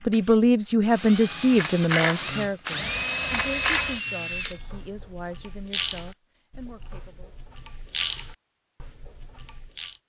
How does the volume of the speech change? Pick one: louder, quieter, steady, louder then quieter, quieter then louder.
quieter.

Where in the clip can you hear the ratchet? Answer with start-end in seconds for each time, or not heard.
1.6-9.9.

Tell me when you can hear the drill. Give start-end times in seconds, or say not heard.
0.1-5.1.